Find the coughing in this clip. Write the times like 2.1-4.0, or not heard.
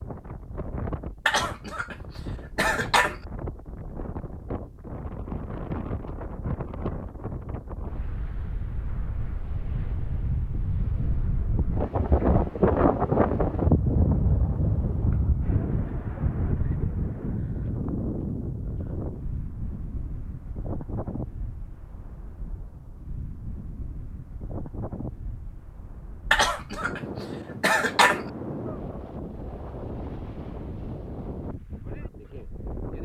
1.2-3.1, 26.3-28.2.